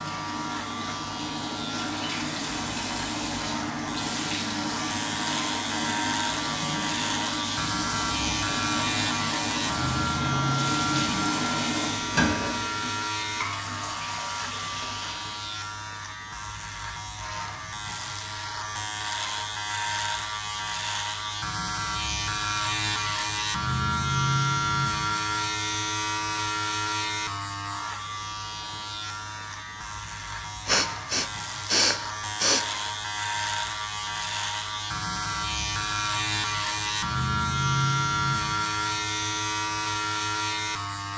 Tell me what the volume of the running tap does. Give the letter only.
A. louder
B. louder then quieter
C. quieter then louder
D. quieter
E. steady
E.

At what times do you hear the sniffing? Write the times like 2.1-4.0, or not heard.
30.6-32.6.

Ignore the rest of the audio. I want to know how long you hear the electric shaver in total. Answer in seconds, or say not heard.
41 s.